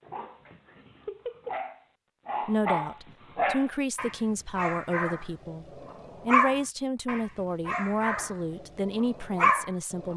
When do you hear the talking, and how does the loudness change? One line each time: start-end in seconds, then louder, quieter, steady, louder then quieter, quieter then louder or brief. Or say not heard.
2.5-10.1 steady.